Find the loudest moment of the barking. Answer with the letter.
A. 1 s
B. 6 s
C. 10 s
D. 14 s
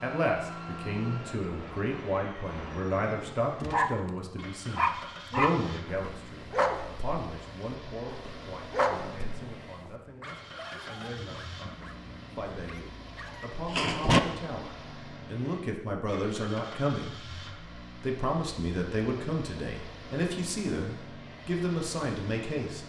D.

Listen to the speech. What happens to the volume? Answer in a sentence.
The loudness of the speech goes down, then up.